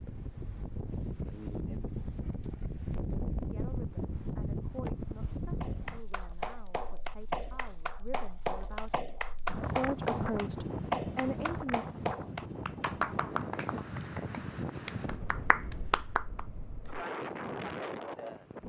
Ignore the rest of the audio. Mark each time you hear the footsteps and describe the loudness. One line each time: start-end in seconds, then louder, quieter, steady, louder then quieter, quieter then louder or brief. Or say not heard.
not heard.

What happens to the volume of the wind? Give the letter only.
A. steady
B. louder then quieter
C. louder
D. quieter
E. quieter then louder
A.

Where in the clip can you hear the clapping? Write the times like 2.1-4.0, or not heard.
5.6-16.4.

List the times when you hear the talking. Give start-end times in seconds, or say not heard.
3.5-11.8.